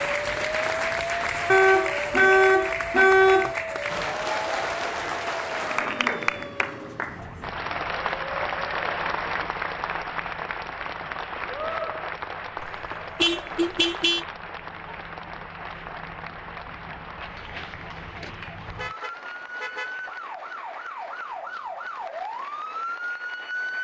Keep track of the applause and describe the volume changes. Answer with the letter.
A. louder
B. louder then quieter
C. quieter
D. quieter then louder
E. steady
C.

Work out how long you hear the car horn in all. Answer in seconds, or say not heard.
6 s.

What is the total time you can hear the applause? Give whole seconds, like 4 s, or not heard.
24 s.